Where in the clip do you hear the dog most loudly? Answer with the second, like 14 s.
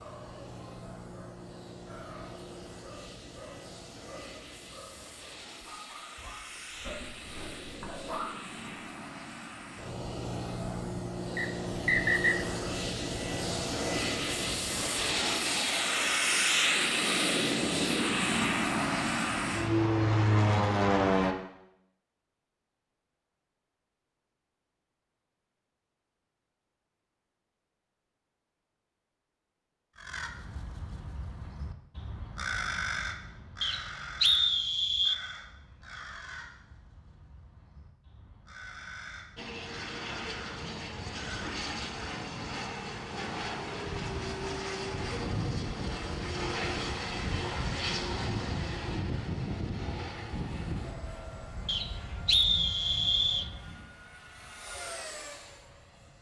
8 s.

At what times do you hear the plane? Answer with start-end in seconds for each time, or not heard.
0.0-21.4, 39.4-56.1.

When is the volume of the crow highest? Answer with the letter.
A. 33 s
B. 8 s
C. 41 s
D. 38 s
A.